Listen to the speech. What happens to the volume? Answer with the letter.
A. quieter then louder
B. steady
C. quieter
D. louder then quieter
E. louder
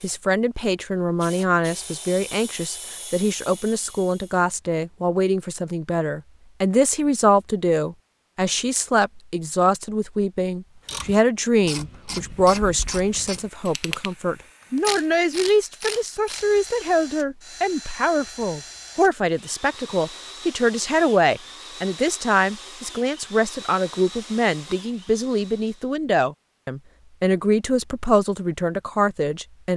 B.